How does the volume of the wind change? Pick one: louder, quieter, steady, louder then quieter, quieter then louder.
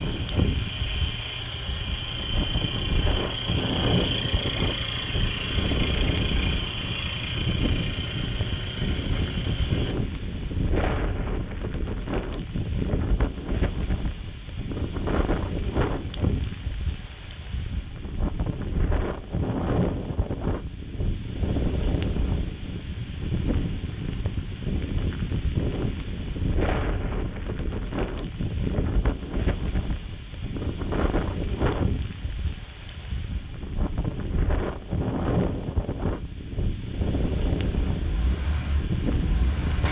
steady.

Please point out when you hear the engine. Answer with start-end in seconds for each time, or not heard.
0.0-9.9, 37.6-39.8.